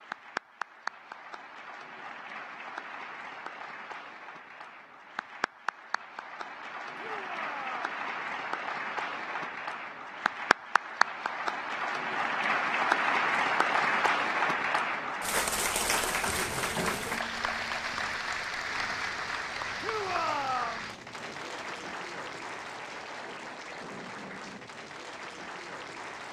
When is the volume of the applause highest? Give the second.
13 s.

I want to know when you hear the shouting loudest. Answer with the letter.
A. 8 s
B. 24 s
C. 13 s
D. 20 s
D.